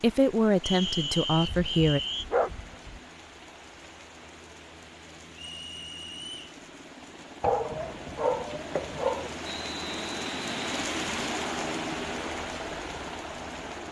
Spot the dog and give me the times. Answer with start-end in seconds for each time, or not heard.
1.4-3.0, 7.4-9.3.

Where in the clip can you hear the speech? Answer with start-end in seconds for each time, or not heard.
0.0-2.0.